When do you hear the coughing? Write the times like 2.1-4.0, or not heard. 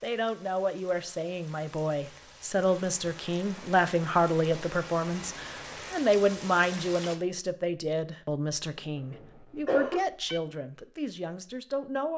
8.9-10.1.